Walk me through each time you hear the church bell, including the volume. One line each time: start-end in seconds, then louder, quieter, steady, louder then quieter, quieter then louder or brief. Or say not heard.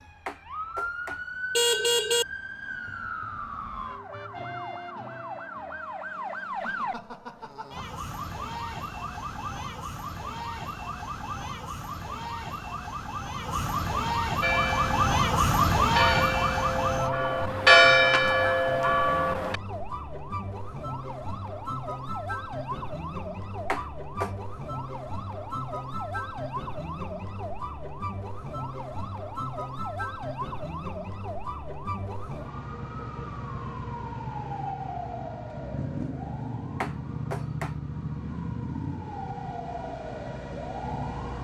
14.4-19.6 louder then quieter.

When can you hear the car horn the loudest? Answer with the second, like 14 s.
2 s.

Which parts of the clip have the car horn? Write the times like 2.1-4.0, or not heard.
0.2-2.2, 23.7-24.3, 36.8-37.8.